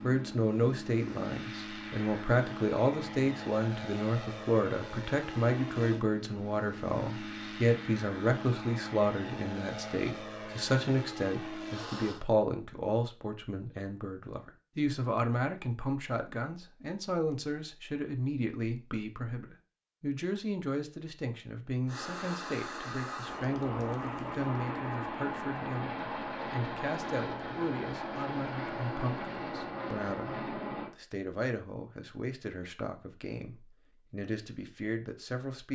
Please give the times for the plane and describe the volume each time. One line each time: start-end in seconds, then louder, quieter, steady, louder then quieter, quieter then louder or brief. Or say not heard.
0.0-12.2 steady
21.9-30.9 steady.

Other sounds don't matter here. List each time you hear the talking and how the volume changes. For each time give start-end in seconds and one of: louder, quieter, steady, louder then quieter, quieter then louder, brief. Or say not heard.
0.0-35.7 quieter.